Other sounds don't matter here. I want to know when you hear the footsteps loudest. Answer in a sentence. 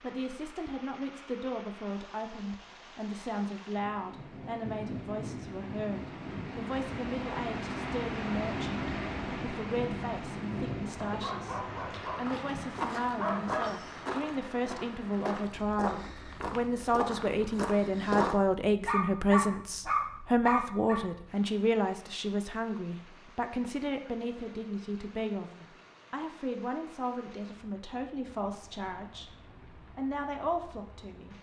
The loudest moment of the footsteps is at 18 seconds.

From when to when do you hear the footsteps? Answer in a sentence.
The footsteps can be heard from 12.2 to 18.4 s.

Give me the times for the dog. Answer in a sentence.
The dog can be heard from 11.0 to 13.8 s and from 18.9 to 21.0 s.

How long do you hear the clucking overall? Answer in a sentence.
The clucking can't be heard in this clip.